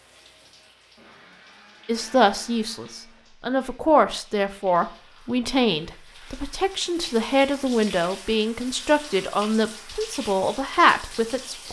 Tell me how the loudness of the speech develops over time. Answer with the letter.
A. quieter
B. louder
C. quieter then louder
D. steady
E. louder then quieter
D.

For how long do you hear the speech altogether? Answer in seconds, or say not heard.
10 s.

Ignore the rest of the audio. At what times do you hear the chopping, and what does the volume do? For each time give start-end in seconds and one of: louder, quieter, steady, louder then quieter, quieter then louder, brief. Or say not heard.
not heard.